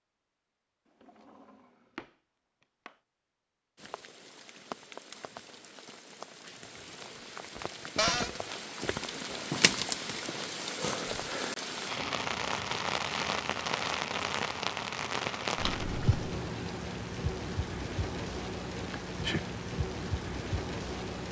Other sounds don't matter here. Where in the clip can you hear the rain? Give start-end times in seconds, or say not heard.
3.8-21.2.